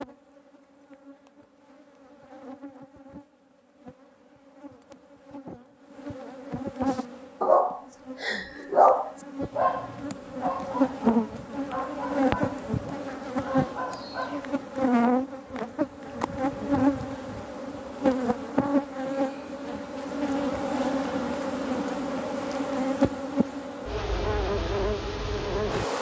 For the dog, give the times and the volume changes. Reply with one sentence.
You can hear the dog from 6.8 to 14.6 s, getting quieter.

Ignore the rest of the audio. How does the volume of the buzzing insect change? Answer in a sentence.
The volume of the buzzing insect goes up.